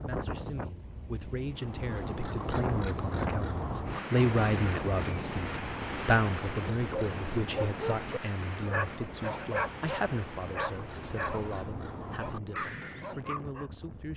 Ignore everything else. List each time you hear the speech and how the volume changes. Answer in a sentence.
You can hear the speech from 0.0 to 14.1 s, getting louder then quieter.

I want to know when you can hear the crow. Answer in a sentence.
The crow can be heard from 1.4 to 13.1 s.